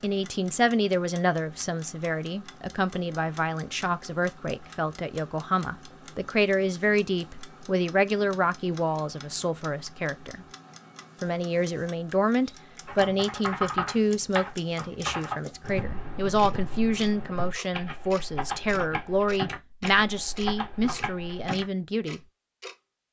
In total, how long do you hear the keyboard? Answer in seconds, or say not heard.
9 s.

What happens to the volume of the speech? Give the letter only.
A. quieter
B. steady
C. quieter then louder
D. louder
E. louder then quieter
B.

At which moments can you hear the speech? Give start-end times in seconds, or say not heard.
0.0-10.4, 11.2-22.2.